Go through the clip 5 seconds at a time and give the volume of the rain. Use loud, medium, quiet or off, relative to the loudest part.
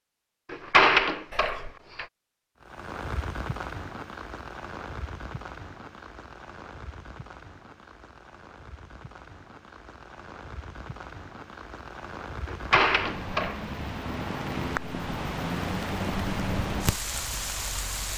medium, quiet, medium, loud.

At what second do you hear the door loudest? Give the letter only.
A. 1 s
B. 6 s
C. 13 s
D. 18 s
A.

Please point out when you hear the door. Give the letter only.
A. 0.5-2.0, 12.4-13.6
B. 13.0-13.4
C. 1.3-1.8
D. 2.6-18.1
A.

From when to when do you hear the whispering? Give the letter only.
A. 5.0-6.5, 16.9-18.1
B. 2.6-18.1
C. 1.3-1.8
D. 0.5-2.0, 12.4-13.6
C.